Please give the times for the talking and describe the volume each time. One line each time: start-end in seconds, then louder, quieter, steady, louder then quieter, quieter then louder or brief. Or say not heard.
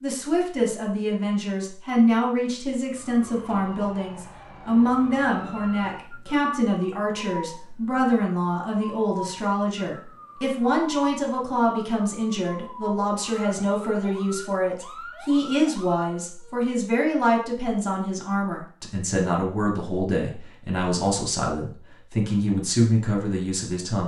0.0-24.0 steady.